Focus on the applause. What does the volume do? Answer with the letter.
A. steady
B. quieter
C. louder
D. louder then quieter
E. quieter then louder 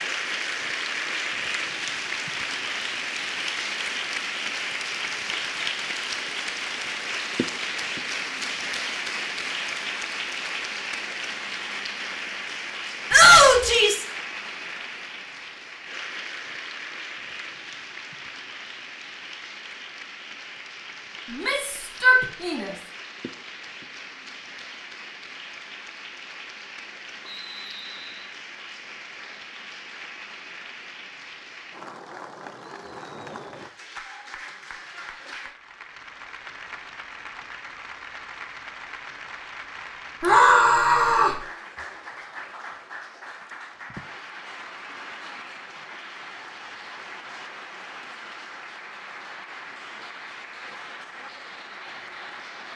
B.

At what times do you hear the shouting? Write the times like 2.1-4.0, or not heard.
13.1-14.1, 21.3-22.8, 40.2-41.4.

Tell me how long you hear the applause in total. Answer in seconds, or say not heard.
53 s.